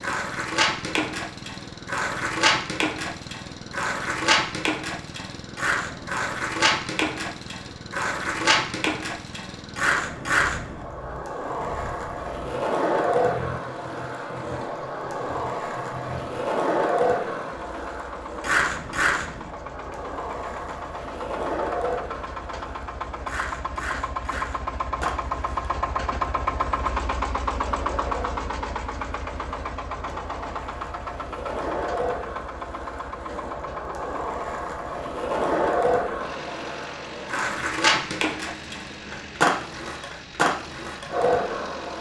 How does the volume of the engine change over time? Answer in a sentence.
The volume of the engine goes up, then down.